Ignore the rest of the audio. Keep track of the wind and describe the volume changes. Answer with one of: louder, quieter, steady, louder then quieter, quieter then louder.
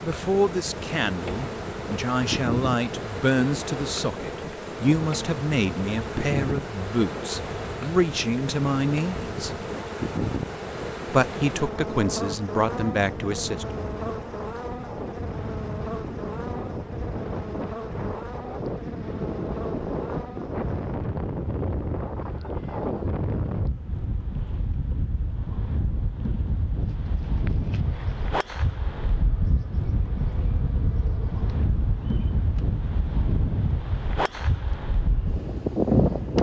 louder.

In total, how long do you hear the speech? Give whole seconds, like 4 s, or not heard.
12 s.